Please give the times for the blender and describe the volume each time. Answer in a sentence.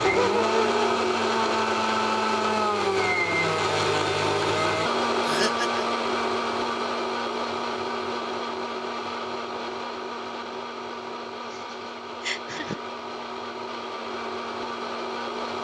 The blender can be heard from 0.0 to 15.5 s, getting quieter.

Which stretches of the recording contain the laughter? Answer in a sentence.
You can hear the laughter from 0.0 to 0.8 s, from 5.2 to 5.8 s and from 11.5 to 12.8 s.